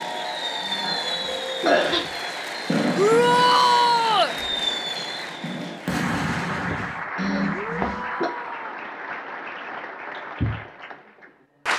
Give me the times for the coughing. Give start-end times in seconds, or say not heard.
0.6-2.1, 7.2-8.3.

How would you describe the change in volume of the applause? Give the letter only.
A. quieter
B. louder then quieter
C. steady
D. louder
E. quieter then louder
C.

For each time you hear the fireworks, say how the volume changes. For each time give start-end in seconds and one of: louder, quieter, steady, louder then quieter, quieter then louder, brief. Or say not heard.
0.0-7.0 steady.